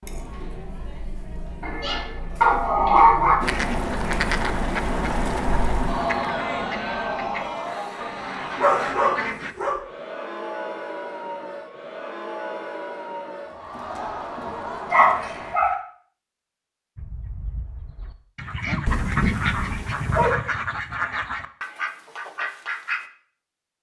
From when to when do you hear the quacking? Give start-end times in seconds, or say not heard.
3.4-9.6, 16.9-23.1.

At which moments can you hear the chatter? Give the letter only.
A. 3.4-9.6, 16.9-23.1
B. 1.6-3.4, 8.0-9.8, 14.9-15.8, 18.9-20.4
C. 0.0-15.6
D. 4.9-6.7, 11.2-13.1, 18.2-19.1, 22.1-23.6
C.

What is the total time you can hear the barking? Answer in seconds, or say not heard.
6 s.